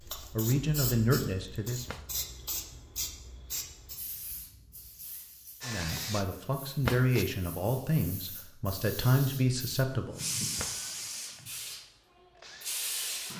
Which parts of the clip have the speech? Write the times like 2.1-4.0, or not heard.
0.1-1.9, 5.7-10.2.